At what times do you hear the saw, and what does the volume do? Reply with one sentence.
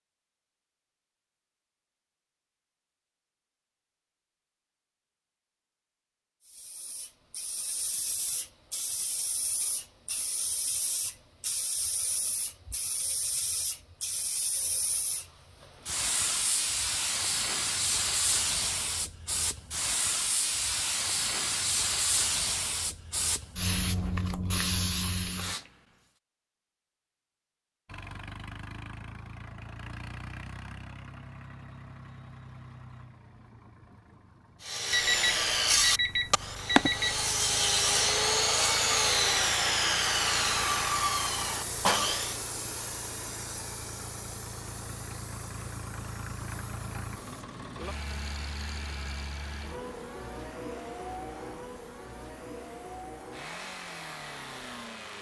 The saw can be heard from 34.6 to 42.4 s, at a steady volume.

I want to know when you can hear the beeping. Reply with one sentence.
The beeping can be heard from 34.9 to 37.2 s.